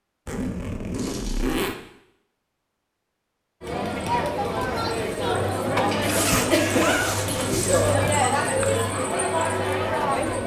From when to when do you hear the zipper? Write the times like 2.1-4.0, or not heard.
0.2-1.8, 6.0-8.0.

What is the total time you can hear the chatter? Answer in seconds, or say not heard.
7 s.